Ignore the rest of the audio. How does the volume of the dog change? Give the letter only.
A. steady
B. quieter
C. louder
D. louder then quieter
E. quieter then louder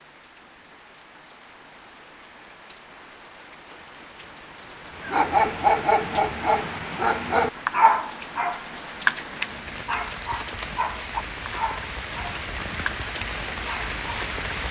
B.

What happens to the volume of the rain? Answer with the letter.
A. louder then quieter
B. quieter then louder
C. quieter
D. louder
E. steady
D.